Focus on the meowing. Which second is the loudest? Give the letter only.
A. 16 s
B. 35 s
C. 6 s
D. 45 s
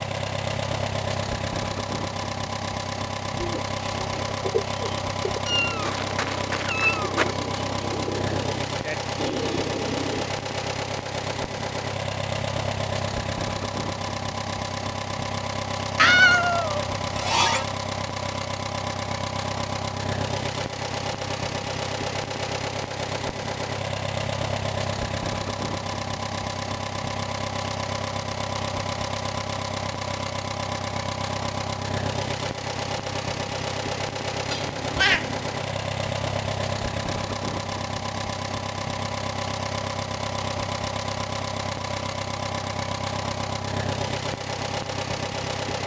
A.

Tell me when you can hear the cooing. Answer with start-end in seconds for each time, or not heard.
3.4-10.2.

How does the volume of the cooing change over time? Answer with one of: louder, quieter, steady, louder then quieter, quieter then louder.
quieter then louder.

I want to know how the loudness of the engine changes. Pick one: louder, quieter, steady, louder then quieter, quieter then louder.
steady.